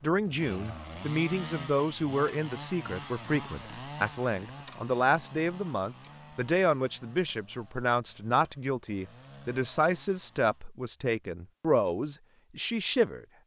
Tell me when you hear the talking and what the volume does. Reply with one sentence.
The talking can be heard from 0.0 to 13.2 s, at a steady volume.